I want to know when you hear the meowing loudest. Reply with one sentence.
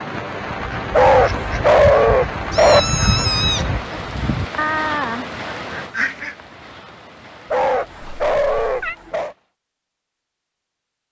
The volume of the meowing peaks at 3 seconds.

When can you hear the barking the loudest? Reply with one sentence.
The loudest moment of the barking is at 2 seconds.